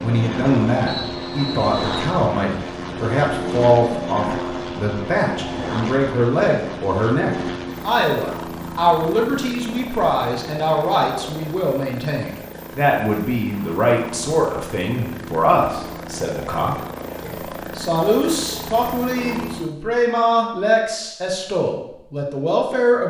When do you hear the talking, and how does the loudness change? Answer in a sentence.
You can hear the talking from 0.0 to 23.0 s, at a steady volume.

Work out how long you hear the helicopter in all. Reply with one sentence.
The helicopter can be heard for 20 seconds in total.